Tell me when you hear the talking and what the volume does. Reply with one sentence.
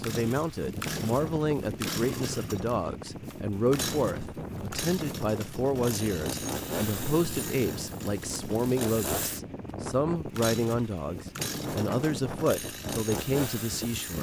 You can hear the talking from 0.0 to 14.1 s, at a steady volume.